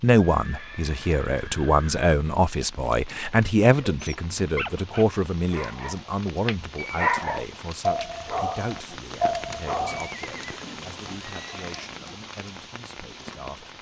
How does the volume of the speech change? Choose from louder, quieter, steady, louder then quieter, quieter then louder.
quieter.